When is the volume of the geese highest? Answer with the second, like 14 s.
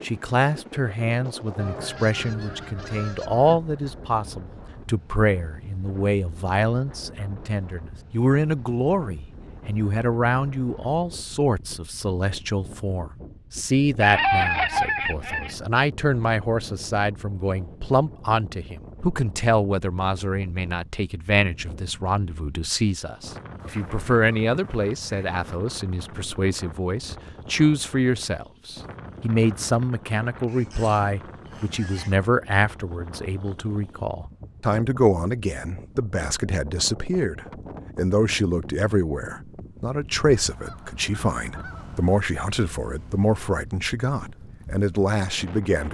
14 s.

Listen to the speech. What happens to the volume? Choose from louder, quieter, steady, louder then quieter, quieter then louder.
steady.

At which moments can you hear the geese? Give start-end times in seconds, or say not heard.
1.6-3.6, 14.0-15.6, 23.6-25.4, 30.4-32.1, 40.2-42.1.